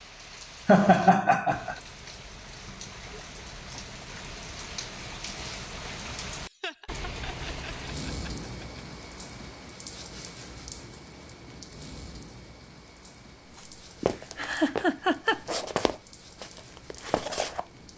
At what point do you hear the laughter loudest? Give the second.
1 s.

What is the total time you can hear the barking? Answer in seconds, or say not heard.
not heard.